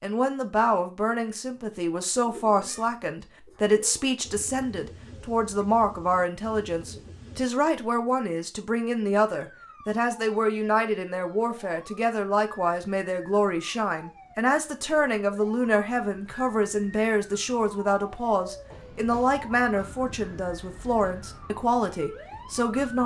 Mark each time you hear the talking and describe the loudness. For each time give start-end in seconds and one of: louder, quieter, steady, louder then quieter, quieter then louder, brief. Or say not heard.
0.0-23.0 steady.